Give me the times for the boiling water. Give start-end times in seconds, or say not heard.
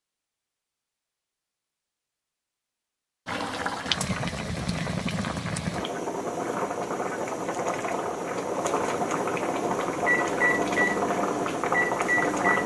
3.2-12.6.